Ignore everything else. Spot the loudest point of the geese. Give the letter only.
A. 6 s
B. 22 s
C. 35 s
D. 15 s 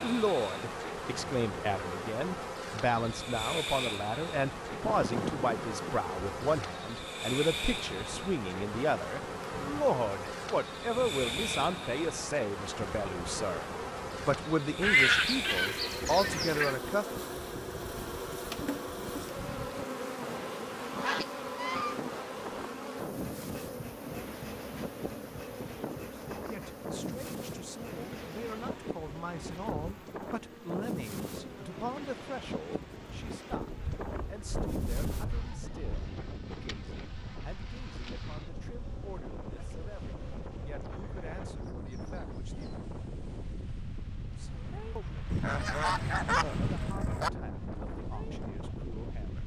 D.